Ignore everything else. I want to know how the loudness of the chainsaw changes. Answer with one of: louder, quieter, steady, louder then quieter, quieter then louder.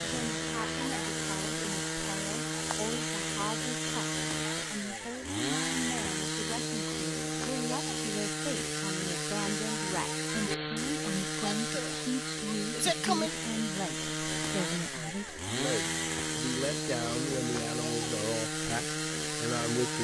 steady.